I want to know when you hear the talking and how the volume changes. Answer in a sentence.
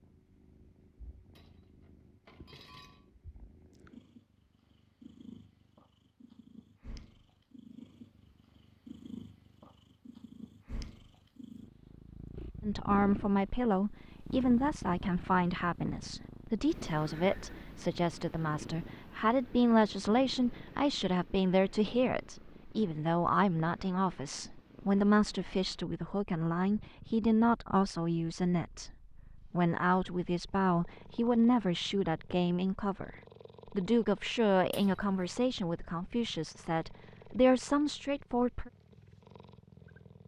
You can hear the talking from 12.6 to 38.7 s, at a steady volume.